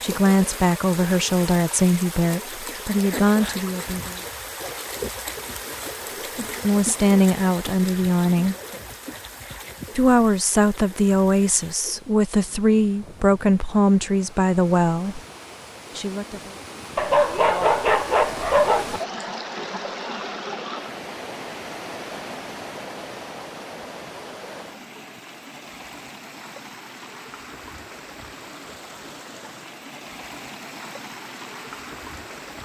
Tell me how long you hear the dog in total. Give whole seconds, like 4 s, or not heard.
2 s.